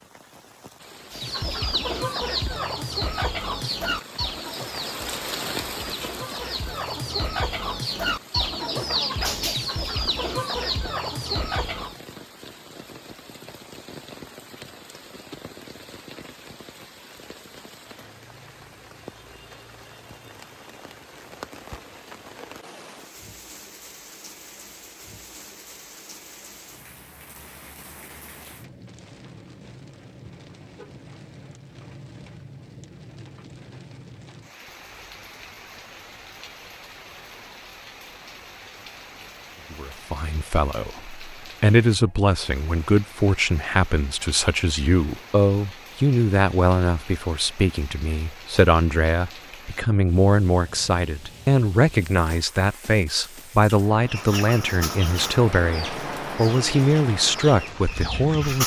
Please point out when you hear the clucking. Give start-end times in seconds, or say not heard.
1.1-12.0, 54.0-58.6.